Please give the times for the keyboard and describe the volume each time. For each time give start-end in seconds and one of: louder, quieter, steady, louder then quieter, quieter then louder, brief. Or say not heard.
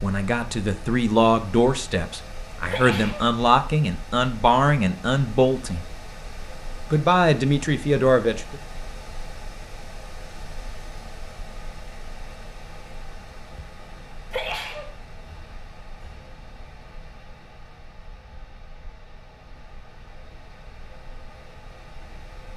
not heard.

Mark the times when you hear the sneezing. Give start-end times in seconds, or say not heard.
2.6-3.3, 14.3-14.9.